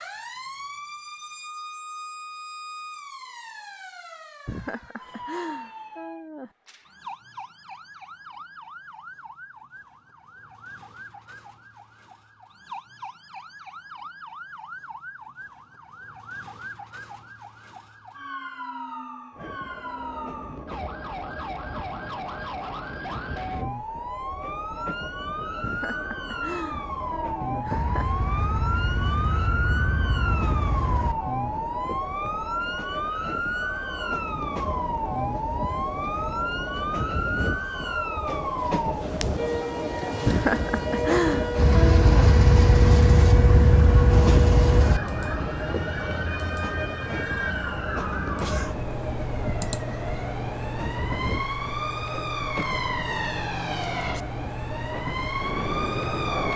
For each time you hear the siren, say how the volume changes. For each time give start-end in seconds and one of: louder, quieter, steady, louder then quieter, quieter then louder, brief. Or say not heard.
0.0-56.5 louder.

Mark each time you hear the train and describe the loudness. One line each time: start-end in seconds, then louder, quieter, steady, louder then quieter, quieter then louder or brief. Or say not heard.
19.4-56.5 louder then quieter.